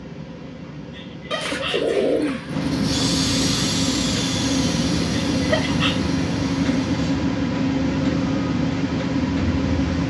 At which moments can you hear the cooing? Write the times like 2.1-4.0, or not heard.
1.3-2.7.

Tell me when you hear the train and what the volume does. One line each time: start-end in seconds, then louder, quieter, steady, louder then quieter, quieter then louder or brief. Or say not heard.
0.0-10.0 louder.